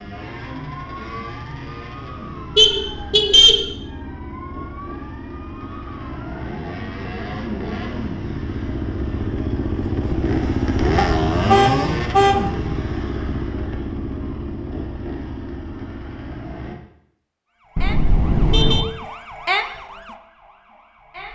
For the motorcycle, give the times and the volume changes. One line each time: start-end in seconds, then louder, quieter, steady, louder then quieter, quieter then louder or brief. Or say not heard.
0.0-16.8 louder then quieter.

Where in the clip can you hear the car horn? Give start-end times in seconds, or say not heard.
2.5-3.6, 10.9-12.4, 17.8-18.9.